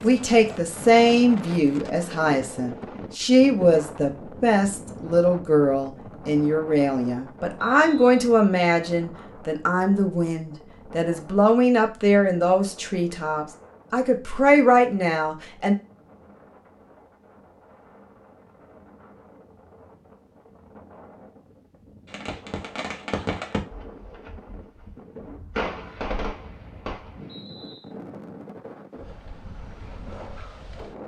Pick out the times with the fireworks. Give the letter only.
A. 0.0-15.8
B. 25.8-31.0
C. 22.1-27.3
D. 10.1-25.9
C.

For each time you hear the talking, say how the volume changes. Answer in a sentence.
You can hear the talking from 0.0 to 15.8 s, at a steady volume.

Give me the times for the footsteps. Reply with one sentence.
You can't hear the footsteps here.